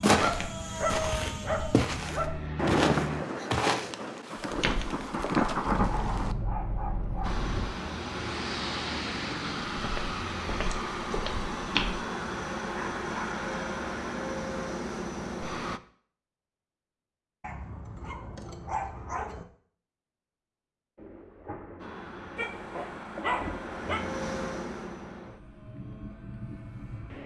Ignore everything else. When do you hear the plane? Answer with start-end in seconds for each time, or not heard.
0.2-3.2, 7.2-15.8, 21.8-27.2.